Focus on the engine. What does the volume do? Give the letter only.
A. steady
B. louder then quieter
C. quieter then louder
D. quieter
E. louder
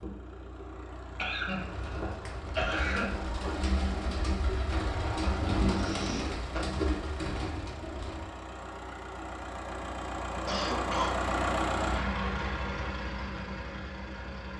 E.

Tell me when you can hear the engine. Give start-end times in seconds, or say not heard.
0.0-14.5.